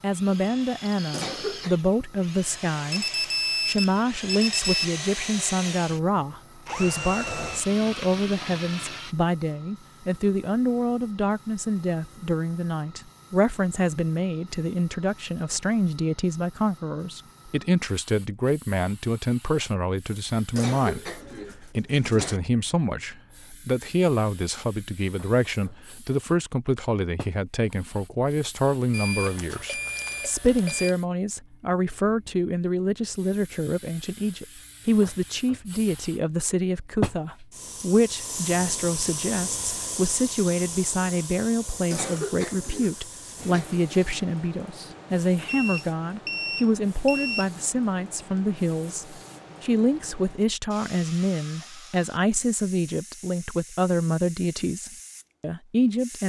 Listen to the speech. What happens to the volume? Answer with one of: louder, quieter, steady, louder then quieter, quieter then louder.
steady.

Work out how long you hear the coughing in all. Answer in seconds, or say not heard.
4 s.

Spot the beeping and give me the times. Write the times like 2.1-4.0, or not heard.
2.9-4.8, 28.9-30.9, 45.5-47.5.